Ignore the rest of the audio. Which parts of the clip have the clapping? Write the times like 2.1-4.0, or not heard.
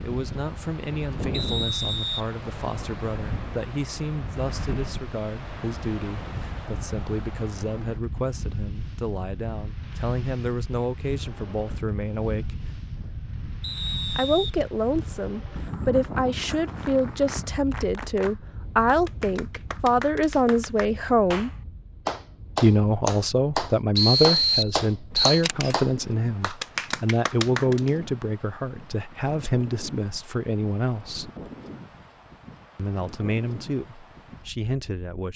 15.8-27.9.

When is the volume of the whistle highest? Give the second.
24 s.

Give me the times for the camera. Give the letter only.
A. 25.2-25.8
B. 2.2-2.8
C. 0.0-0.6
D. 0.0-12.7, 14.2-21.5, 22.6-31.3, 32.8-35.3
A.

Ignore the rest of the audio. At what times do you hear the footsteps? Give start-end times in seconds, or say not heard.
not heard.